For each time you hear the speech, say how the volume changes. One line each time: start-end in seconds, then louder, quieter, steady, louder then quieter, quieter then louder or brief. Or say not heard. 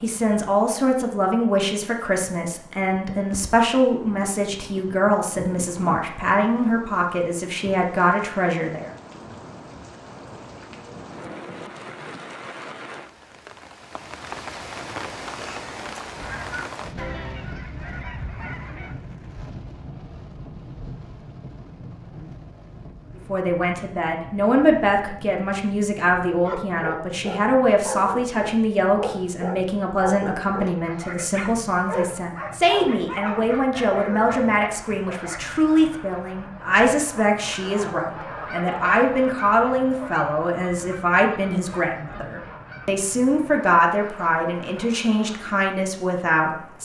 0.0-8.9 steady
23.1-46.7 steady.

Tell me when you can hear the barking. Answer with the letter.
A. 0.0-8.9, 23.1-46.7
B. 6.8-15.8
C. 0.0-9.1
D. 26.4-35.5
D.